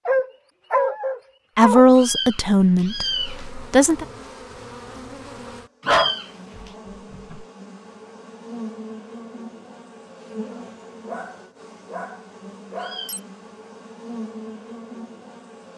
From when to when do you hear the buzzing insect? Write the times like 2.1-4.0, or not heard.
3.0-15.7.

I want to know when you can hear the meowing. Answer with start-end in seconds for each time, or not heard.
1.9-3.5, 5.8-6.7, 12.8-13.2.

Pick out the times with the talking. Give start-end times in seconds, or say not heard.
1.6-4.0.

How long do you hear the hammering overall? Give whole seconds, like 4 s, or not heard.
not heard.